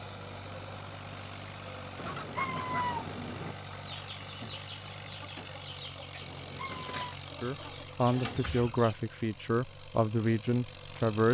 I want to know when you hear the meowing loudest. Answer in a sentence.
The volume of the meowing peaks at 3 seconds.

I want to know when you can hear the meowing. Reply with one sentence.
You can hear the meowing from 1.9 to 3.5 s and from 6.2 to 7.2 s.